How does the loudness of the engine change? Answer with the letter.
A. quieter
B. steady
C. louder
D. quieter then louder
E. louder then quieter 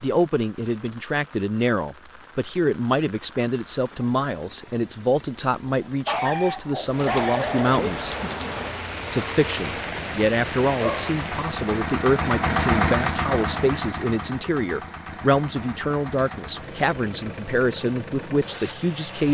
E.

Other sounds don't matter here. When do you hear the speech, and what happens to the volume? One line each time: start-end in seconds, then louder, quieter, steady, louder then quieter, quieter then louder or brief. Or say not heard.
0.0-8.1 steady
9.1-19.2 steady.